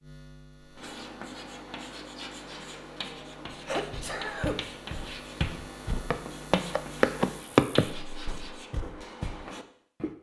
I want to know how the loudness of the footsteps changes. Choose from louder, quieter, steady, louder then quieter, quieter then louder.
louder then quieter.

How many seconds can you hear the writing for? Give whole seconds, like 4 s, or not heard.
9 s.